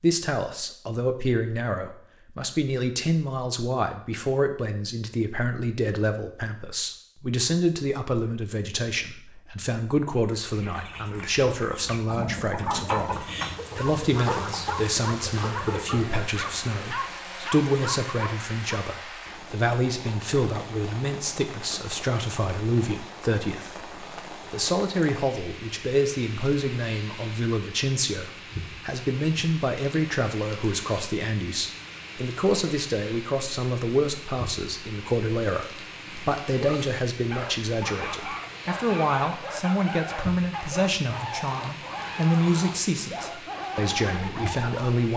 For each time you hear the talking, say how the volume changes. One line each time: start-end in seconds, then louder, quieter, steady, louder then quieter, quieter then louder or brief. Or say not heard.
0.0-45.1 steady.